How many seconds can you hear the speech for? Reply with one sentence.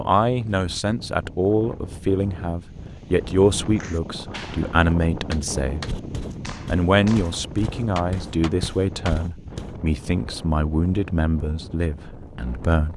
You can hear the speech for 12 seconds altogether.